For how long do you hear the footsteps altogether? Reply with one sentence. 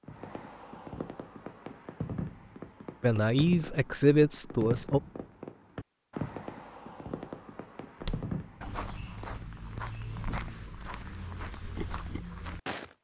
You can hear the footsteps for 5 seconds altogether.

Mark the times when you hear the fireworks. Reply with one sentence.
The fireworks can be heard from 0.0 to 8.8 s.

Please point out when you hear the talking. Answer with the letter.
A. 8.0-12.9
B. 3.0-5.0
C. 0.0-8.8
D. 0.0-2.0
B.